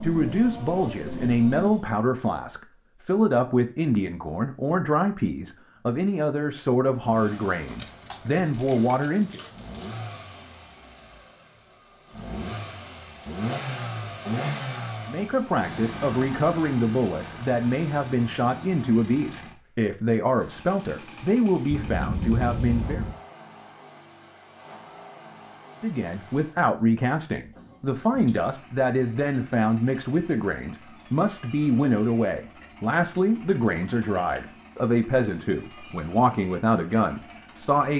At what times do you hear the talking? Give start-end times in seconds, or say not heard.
0.0-9.4, 15.1-23.1, 25.8-37.9.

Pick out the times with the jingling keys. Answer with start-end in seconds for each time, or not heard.
7.7-10.0, 21.7-23.2, 33.8-34.7.